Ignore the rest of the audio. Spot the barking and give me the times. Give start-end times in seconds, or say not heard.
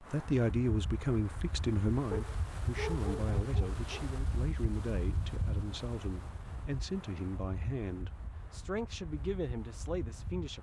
2.1-4.0.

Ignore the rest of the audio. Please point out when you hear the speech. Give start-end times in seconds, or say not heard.
0.0-10.5.